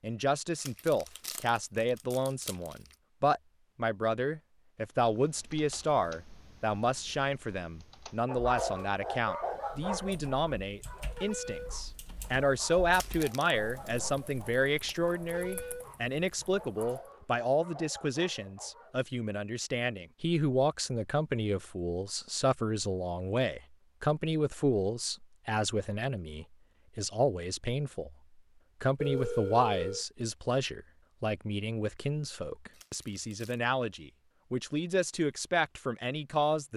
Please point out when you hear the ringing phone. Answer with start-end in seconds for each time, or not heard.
29.0-30.1.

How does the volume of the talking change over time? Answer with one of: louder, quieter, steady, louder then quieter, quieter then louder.
steady.